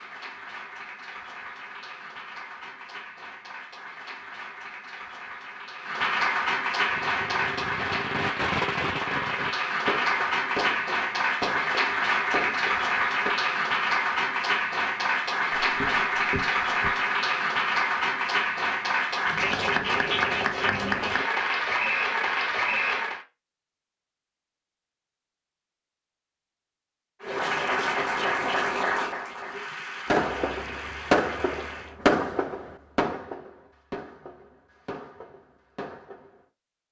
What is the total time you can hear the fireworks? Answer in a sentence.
You can hear the fireworks for 13 seconds altogether.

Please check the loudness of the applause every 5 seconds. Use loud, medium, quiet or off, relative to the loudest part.
quiet, loud, loud, loud, loud, loud, quiet, off.